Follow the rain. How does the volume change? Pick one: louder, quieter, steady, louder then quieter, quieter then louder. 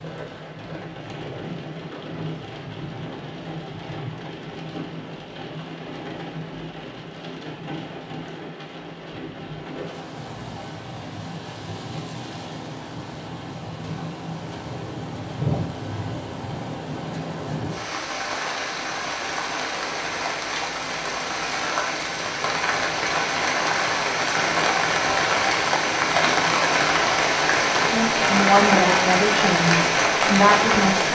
louder.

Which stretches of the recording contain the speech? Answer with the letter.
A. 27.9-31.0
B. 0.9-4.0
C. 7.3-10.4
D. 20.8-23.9
A.